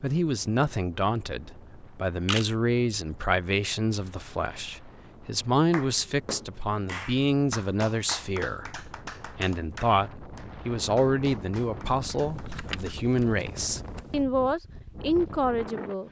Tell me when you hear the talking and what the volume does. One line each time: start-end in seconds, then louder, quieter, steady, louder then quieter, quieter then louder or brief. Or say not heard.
0.0-16.0 steady.